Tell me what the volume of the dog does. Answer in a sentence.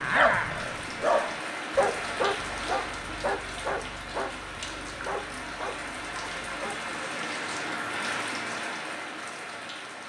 The volume of the dog goes down.